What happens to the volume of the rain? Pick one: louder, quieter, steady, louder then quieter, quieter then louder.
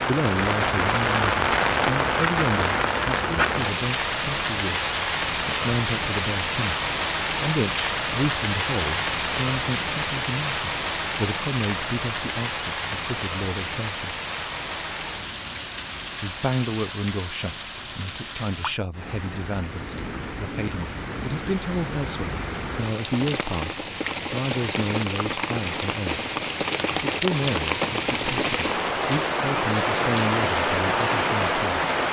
quieter then louder.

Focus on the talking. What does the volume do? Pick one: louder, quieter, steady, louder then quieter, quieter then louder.
steady.